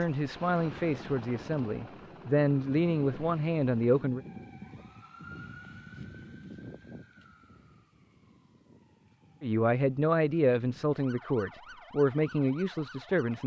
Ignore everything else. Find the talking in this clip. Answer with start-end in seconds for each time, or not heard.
0.0-4.2, 9.4-13.4.